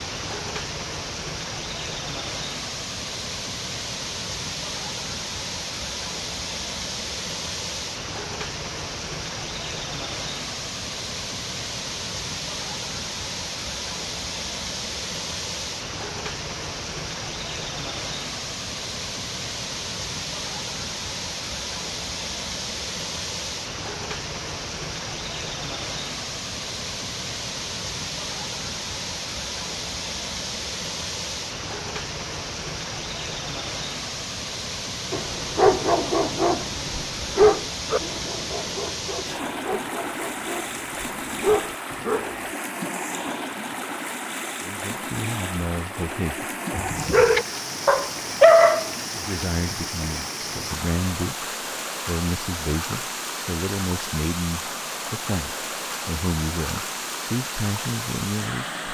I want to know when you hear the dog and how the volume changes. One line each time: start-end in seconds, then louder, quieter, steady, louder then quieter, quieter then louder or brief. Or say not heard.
35.1-42.5 quieter then louder
46.7-48.9 brief.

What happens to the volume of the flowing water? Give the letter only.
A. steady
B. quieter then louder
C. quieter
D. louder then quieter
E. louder
A.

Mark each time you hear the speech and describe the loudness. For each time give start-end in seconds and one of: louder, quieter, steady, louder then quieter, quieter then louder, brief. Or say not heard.
44.6-46.5 brief
49.1-51.5 brief
52.0-58.6 steady.